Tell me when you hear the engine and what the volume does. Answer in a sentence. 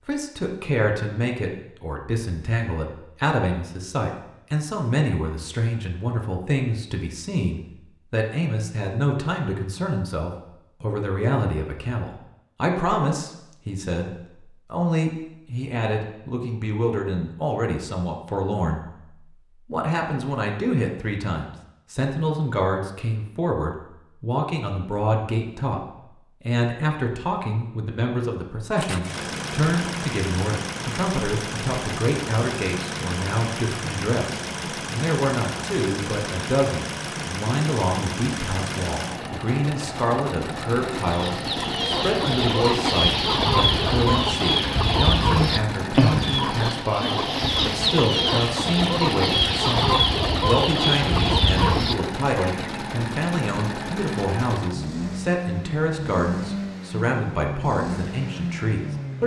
The engine can be heard from 28.8 to 59.2 s, at a steady volume.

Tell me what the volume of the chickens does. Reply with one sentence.
The loudness of the chickens stays about the same.